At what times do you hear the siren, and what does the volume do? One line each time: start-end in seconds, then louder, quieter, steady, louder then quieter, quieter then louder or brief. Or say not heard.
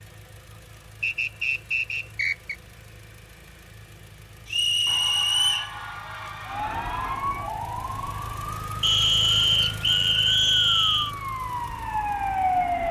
6.5-12.8 quieter then louder.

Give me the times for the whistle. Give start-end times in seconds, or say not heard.
1.0-2.5, 4.5-5.7, 8.8-11.1.